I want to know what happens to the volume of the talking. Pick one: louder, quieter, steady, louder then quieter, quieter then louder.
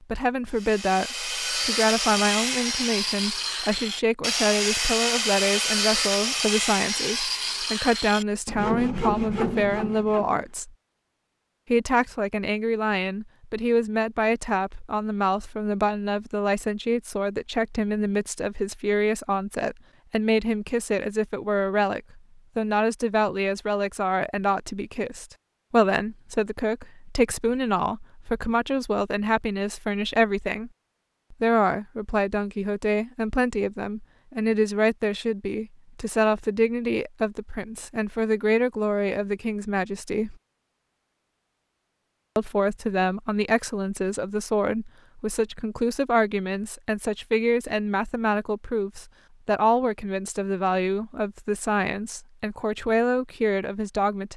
steady.